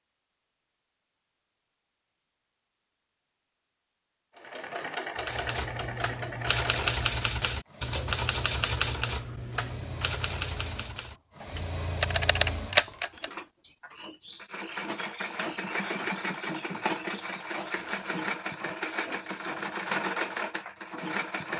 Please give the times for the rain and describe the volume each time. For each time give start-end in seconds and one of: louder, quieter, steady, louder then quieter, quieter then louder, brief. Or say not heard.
not heard.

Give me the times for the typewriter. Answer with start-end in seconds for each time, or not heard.
5.2-13.3.